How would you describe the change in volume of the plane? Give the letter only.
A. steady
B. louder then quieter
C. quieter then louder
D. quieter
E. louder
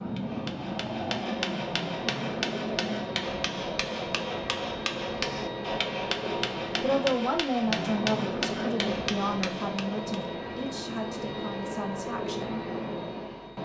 A.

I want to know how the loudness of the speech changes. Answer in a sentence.
The volume of the speech goes down.